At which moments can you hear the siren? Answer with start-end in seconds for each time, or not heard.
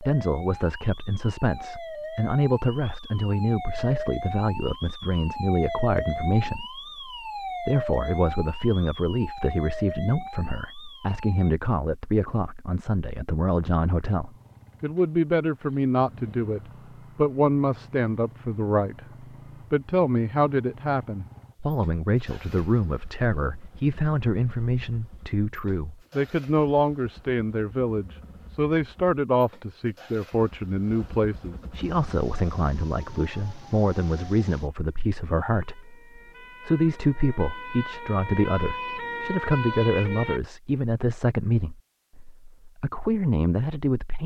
0.0-11.5, 31.8-40.4.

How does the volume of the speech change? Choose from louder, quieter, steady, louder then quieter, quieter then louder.
steady.